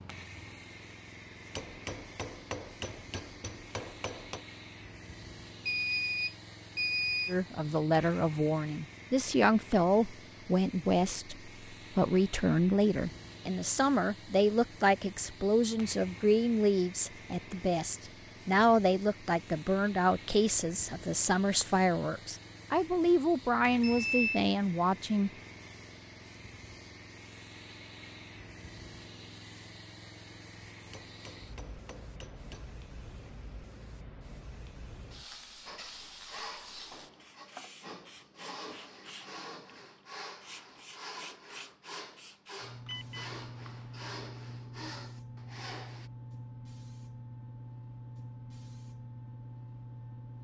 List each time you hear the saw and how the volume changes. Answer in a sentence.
The saw can be heard from 35.6 to 46.1 s, at a steady volume.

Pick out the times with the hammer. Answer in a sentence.
The hammer can be heard from 1.5 to 4.5 s and from 30.9 to 32.8 s.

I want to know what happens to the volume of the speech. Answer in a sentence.
The volume of the speech stays about the same.